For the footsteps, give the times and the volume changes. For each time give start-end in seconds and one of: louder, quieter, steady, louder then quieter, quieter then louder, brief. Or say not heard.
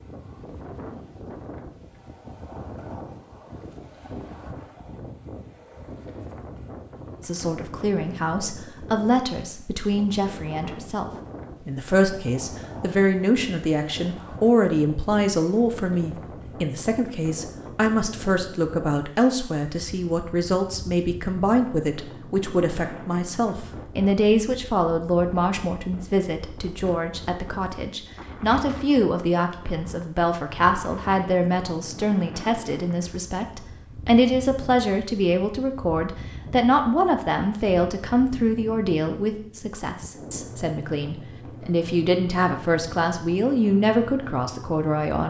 not heard.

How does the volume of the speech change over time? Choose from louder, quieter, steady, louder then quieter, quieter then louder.
steady.